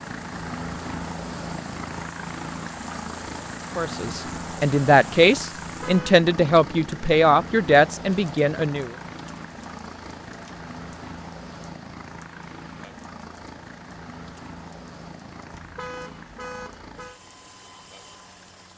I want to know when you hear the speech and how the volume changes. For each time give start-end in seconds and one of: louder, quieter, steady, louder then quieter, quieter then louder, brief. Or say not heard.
3.8-8.9 steady.